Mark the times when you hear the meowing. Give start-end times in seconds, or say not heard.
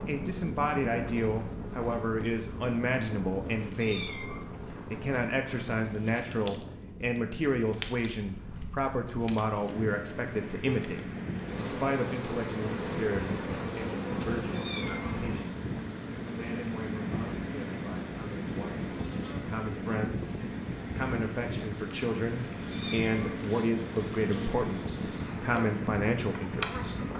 3.8-4.4, 14.5-15.2, 22.7-23.4.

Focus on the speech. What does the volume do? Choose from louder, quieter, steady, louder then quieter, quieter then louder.
quieter then louder.